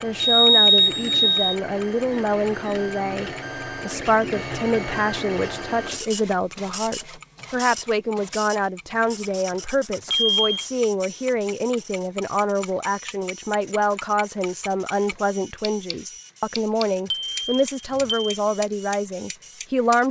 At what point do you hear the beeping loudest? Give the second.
1 s.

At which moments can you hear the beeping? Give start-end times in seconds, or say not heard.
0.2-1.6, 10.1-10.7, 17.1-18.4.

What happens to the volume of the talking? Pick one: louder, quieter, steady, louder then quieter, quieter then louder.
steady.